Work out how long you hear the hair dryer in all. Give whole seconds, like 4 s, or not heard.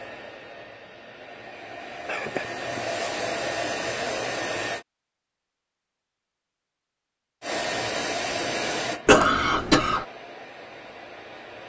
9 s.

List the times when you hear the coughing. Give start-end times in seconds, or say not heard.
2.0-3.0, 9.1-10.1.